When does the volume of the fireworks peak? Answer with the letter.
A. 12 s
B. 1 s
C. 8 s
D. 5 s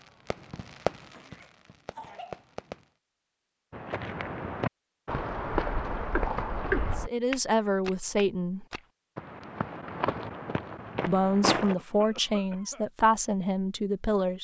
B.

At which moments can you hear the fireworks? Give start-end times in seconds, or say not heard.
0.0-2.9.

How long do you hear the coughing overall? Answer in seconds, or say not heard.
3 s.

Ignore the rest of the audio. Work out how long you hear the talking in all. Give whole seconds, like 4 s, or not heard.
5 s.